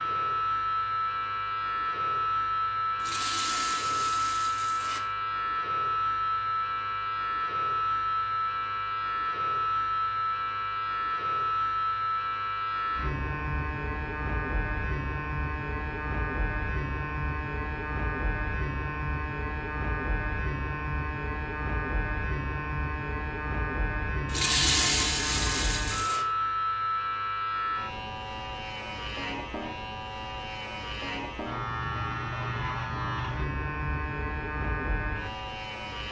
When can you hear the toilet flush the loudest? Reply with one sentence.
The volume of the toilet flush peaks at 25 seconds.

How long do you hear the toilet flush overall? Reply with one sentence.
The toilet flush can be heard for 4 seconds in total.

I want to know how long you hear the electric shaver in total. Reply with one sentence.
The electric shaver can be heard for 36 seconds in total.